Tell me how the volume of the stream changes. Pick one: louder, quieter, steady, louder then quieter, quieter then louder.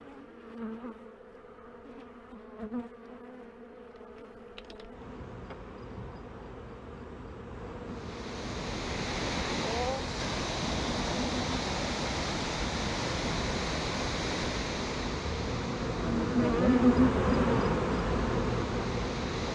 quieter.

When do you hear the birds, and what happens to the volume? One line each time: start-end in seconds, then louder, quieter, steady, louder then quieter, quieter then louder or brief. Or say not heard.
not heard.